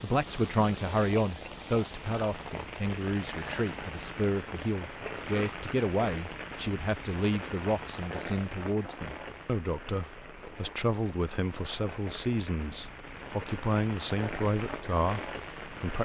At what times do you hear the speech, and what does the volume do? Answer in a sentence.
You can hear the speech from 0.0 to 15.9 s, at a steady volume.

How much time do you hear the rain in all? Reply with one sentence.
You can hear the rain for 16 seconds altogether.